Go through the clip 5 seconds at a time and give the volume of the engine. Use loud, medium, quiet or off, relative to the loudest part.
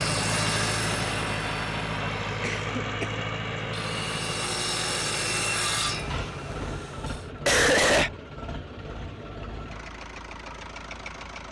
loud, medium, medium.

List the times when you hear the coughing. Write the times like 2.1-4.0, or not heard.
2.0-3.1, 6.1-8.1.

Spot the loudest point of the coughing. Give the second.
8 s.